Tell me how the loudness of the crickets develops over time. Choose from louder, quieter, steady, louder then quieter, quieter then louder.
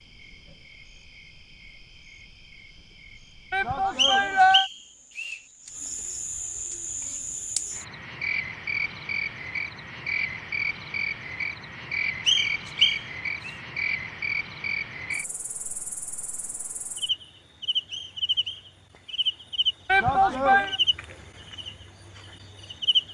louder.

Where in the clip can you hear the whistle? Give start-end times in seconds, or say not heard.
4.0-5.4, 12.2-13.6, 17.9-19.3.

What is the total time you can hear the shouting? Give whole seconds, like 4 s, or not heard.
2 s.